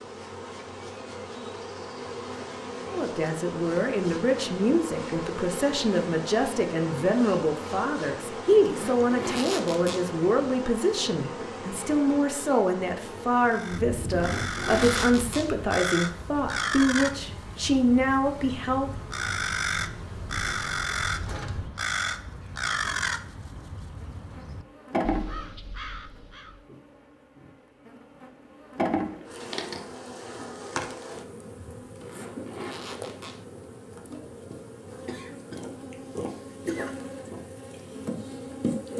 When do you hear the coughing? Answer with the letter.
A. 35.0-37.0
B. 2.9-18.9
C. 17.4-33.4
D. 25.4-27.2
A.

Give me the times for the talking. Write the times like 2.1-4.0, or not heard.
2.9-18.9.